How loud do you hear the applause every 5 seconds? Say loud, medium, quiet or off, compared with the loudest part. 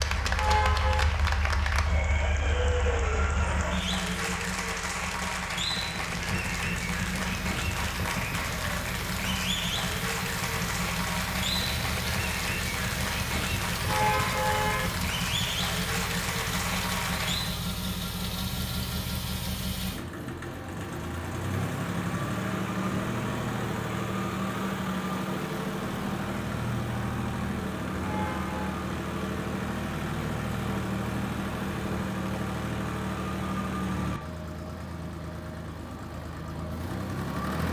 loud, loud, loud, loud, off, off, off, off.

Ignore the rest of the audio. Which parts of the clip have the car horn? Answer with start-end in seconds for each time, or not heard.
0.3-1.1, 13.8-14.9, 28.0-28.6.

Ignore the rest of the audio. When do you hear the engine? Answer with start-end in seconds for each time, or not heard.
0.0-37.6.